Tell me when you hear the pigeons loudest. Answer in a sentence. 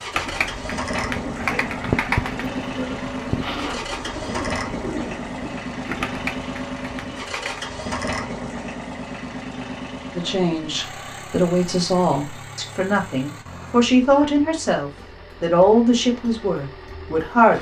The loudest moment of the pigeons is at 2 seconds.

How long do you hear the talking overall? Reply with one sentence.
You can hear the talking for 7 seconds altogether.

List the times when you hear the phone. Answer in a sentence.
The phone can't be heard in this clip.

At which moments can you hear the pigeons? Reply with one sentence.
The pigeons can be heard from 0.1 to 7.7 s.